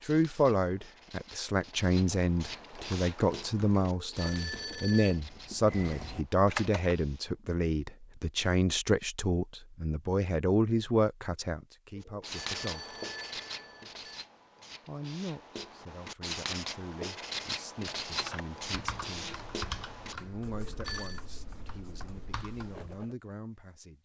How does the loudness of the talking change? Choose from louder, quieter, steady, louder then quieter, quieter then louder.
quieter.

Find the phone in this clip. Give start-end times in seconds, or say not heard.
3.9-5.2, 11.9-14.2, 20.6-21.2.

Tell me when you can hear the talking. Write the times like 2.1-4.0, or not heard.
0.1-12.9, 14.8-19.4, 20.2-24.0.